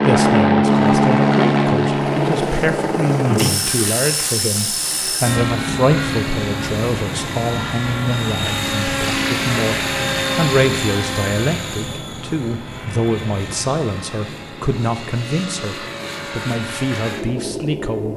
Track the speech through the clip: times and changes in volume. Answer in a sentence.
You can hear the speech from 0.0 to 18.1 s, at a steady volume.